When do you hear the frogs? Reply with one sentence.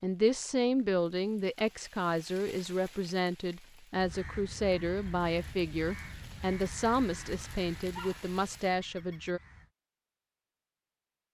The frogs can't be heard in this clip.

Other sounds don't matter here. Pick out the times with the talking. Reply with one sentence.
The talking can be heard from 0.0 to 9.4 s.